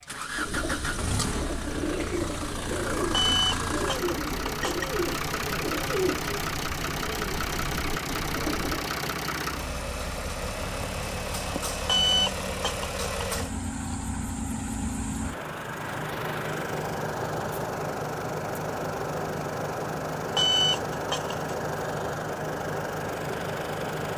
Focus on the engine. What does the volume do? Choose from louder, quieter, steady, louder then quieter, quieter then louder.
steady.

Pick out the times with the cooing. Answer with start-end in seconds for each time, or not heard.
0.3-8.9.